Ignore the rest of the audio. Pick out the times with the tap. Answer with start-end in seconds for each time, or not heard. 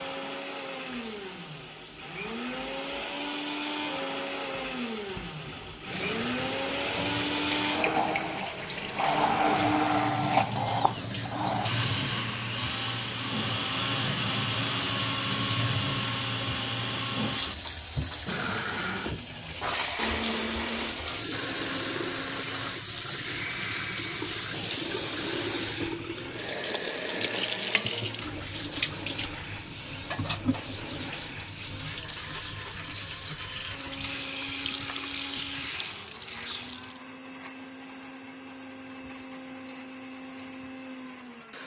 0.0-37.0.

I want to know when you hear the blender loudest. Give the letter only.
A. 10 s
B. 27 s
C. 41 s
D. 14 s
A.